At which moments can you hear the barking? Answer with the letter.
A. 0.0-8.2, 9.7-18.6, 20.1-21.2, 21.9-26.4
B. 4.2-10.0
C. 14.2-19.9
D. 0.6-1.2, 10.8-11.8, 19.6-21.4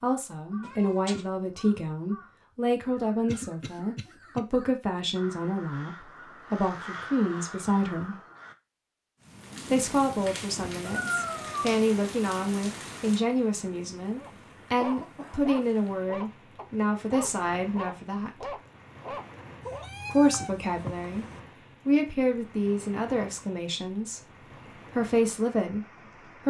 C.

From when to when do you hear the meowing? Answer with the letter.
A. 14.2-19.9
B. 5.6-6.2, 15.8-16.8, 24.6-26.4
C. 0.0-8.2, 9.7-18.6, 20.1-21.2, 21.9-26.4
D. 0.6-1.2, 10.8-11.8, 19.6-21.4
D.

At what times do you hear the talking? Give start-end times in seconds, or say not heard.
0.0-8.2, 9.7-18.6, 20.1-21.2, 21.9-26.4.